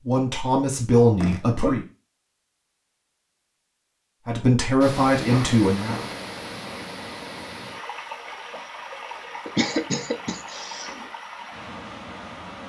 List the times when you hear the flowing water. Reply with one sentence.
The flowing water can be heard from 4.8 to 12.6 s.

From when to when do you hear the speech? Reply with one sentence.
You can hear the speech from 0.0 to 1.8 s and from 4.2 to 6.0 s.